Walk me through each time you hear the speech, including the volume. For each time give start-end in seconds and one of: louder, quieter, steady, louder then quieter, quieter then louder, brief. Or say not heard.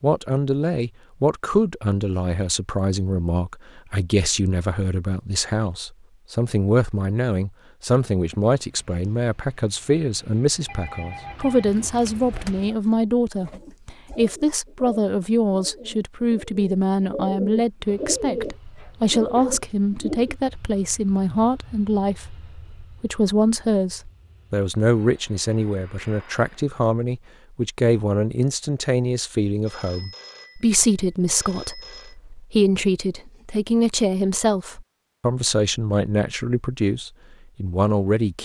0.0-38.4 steady.